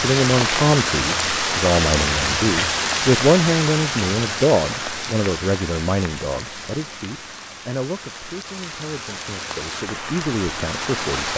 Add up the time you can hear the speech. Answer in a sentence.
You can hear the speech for 11 seconds altogether.